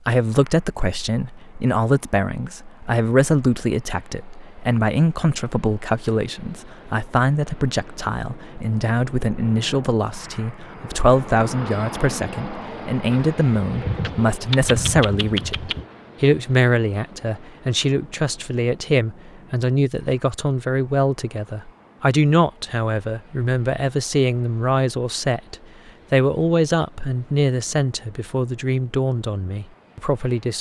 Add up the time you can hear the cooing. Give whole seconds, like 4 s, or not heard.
3 s.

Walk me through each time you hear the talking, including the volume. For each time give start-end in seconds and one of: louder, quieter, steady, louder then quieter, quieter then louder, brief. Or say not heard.
0.1-30.5 steady.